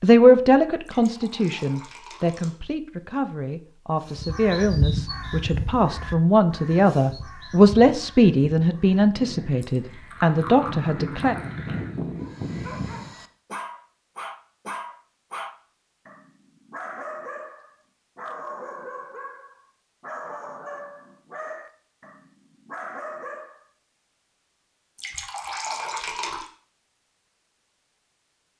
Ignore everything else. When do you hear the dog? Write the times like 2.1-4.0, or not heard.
12.2-23.6.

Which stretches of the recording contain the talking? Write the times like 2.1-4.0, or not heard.
0.0-11.3.